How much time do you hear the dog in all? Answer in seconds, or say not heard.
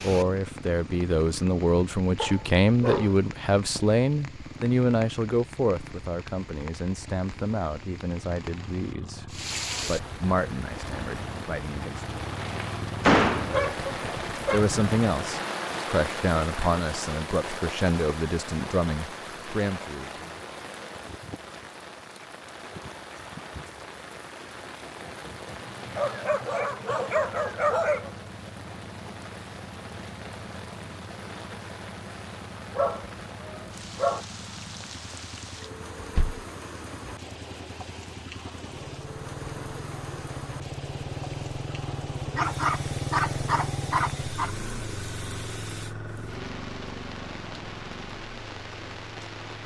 9 s.